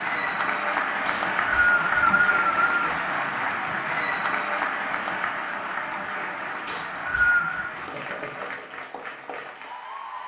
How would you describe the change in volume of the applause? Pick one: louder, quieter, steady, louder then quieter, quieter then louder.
quieter.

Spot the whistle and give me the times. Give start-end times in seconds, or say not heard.
1.1-3.0, 6.7-7.7.